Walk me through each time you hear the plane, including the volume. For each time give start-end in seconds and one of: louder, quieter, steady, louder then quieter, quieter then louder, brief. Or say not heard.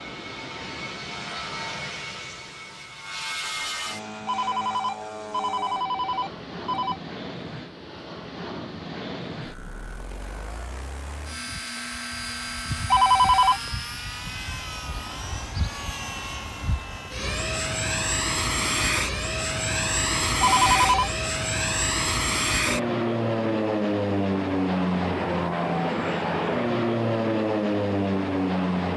0.0-28.9 louder.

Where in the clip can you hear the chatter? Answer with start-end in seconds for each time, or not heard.
not heard.